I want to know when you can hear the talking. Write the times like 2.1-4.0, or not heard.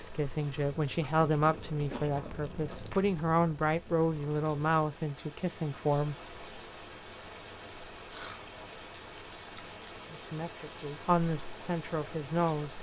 0.0-6.2, 10.1-12.7.